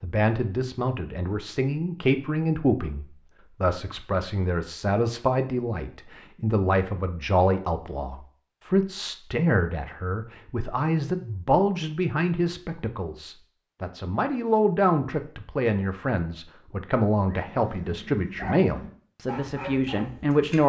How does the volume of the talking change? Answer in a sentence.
The loudness of the talking stays about the same.